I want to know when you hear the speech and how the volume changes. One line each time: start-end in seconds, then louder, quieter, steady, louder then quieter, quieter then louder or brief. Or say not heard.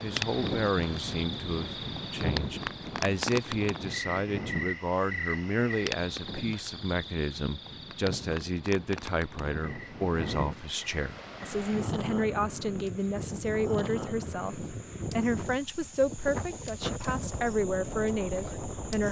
0.0-19.0 steady.